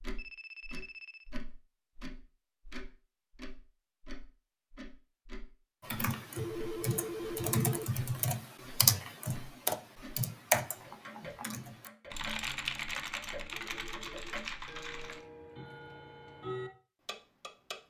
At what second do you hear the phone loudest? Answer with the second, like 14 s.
7 s.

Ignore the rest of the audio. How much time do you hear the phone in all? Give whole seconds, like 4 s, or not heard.
4 s.